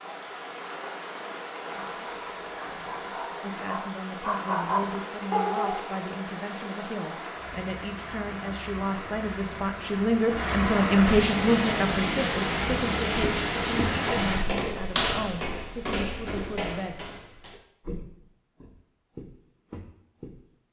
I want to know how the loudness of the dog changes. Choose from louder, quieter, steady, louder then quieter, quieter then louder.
louder.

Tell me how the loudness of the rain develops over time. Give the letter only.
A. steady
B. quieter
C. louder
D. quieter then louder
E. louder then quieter
C.